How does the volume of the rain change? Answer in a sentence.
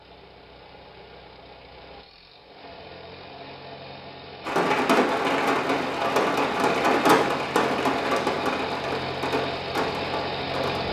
The loudness of the rain goes down.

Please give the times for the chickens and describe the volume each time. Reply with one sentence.
You can't hear the chickens here.